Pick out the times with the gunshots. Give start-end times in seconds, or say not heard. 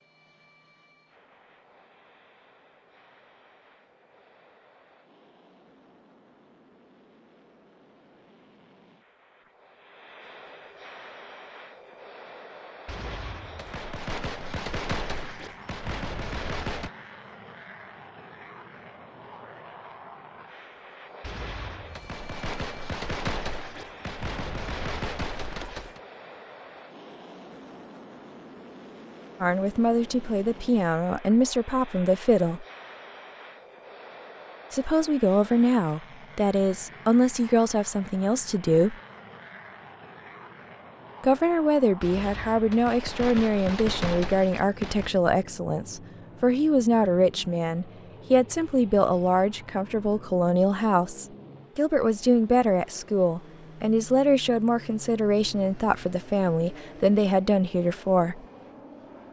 12.8-16.9, 21.2-26.0, 42.0-45.1.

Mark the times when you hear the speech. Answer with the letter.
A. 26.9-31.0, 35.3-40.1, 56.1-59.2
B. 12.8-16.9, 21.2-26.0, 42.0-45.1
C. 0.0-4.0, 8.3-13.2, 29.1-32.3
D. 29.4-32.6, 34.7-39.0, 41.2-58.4
D.